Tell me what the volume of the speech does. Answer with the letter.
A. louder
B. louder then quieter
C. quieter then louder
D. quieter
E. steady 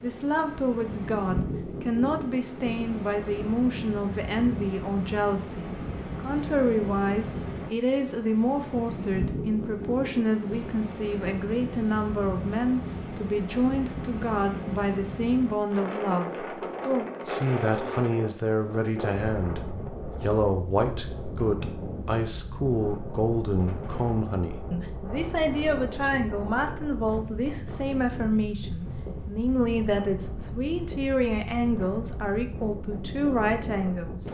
E.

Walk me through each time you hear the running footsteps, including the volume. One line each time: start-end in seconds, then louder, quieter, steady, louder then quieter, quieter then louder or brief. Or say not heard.
not heard.